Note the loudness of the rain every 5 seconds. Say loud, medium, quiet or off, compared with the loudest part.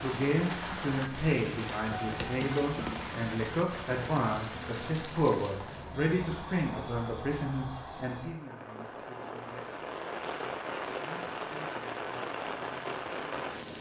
loud, medium, loud.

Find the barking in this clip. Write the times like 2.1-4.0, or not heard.
not heard.